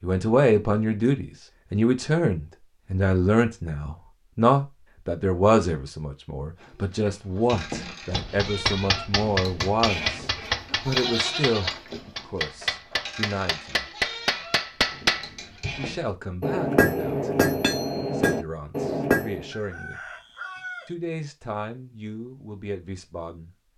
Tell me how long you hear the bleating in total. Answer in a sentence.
You can hear the bleating for 9 seconds altogether.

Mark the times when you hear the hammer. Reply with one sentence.
The hammer can be heard from 7.5 to 19.5 s.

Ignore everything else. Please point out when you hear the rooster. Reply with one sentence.
You can hear the rooster from 19.5 to 20.9 s.